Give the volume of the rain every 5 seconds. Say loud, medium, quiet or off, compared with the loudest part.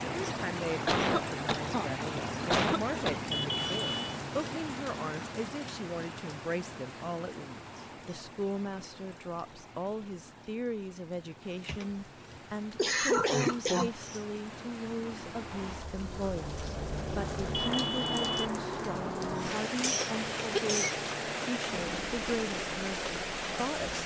loud, medium, quiet, loud, loud.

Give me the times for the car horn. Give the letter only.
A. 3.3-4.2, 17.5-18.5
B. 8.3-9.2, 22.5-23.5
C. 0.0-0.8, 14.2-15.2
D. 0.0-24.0
A.